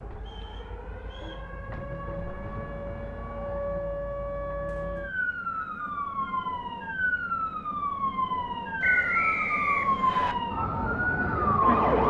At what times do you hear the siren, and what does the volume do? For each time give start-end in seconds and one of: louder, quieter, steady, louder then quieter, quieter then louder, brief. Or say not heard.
0.0-12.0 louder.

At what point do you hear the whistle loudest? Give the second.
9 s.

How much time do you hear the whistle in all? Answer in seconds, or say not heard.
5 s.